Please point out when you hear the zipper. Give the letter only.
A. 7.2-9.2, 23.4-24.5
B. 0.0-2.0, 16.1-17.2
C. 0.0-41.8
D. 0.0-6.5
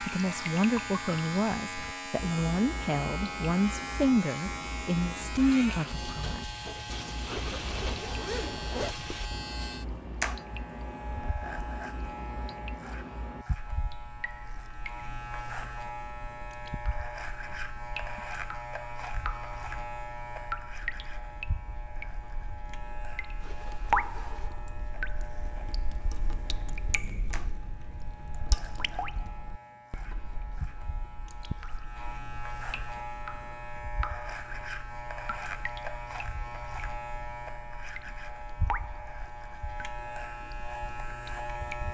A.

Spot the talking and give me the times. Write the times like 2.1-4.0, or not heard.
0.0-6.5.